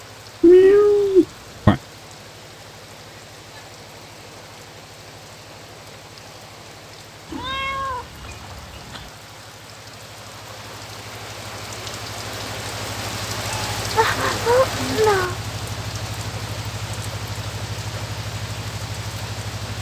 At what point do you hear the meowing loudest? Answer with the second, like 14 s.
1 s.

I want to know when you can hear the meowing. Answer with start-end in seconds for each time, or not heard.
0.4-1.8, 7.2-9.1, 13.5-15.3.